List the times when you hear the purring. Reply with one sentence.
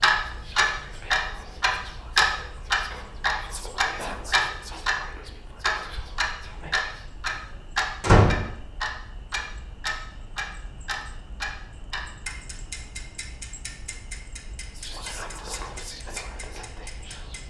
The purring can't be heard in this clip.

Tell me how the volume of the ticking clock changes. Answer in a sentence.
The loudness of the ticking clock goes down.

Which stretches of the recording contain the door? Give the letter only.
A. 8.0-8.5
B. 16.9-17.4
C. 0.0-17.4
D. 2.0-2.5
A.